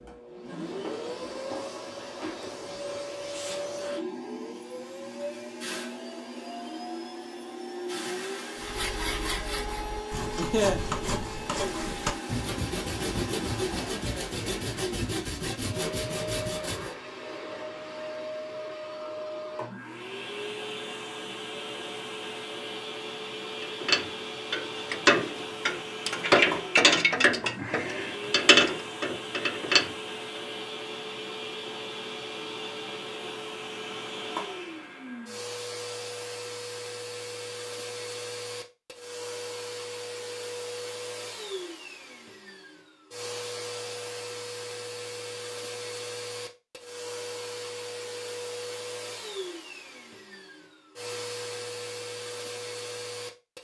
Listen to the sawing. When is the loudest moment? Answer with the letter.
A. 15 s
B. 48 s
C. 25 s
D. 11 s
D.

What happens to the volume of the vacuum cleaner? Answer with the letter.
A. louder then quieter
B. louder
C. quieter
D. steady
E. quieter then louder
D.